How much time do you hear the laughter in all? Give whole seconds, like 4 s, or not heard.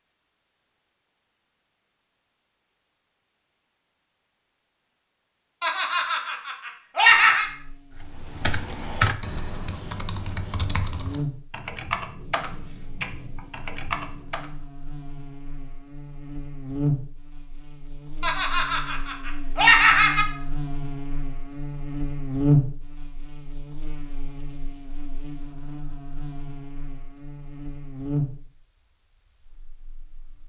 4 s.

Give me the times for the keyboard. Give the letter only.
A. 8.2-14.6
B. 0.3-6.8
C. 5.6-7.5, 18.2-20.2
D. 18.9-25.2
A.